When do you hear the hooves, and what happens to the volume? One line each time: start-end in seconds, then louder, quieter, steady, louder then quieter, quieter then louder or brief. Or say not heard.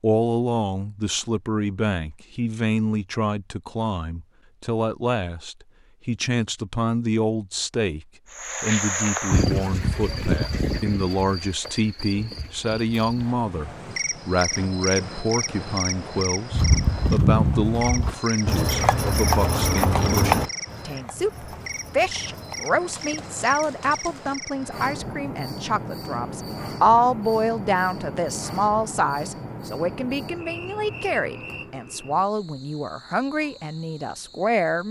16.5-24.4 quieter.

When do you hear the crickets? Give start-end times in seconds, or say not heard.
8.3-34.8.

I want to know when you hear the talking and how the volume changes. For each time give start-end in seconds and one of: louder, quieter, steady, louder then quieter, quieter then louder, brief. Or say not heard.
0.0-34.8 steady.